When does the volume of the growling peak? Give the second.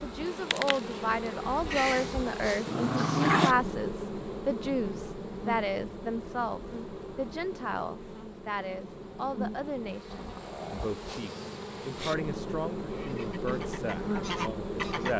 3 s.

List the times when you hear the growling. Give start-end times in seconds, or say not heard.
1.7-3.5, 10.1-12.1.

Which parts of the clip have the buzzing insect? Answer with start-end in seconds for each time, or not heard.
0.0-15.1.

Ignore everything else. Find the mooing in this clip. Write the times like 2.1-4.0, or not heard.
not heard.